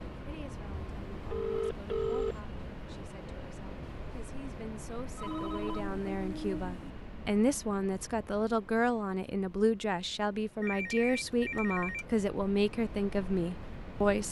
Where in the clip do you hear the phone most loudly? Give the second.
2 s.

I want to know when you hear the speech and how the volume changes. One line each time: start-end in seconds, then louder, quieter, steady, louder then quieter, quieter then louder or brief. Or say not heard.
0.1-14.2 louder.